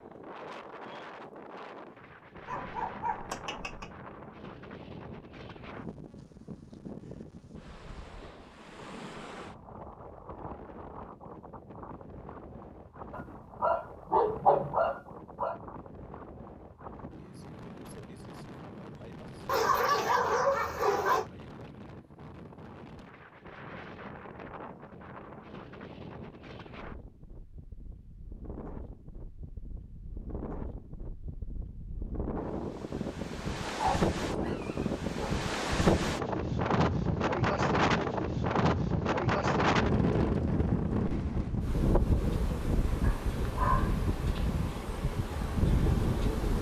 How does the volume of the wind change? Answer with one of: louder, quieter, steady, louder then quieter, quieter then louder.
louder.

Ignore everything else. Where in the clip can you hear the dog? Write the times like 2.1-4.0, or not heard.
2.5-3.9, 13.1-15.6, 19.4-21.2, 33.6-35.3, 43.0-44.5.